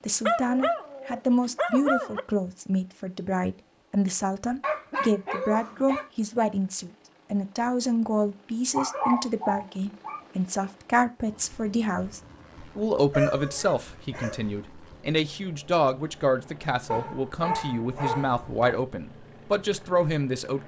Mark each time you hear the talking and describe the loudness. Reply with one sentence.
You can hear the talking from 0.0 to 20.6 s, at a steady volume.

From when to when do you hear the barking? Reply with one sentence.
The barking can be heard from 0.2 to 2.2 s, from 4.6 to 6.0 s, from 8.8 to 10.7 s, from 13.1 to 14.4 s and from 16.9 to 18.8 s.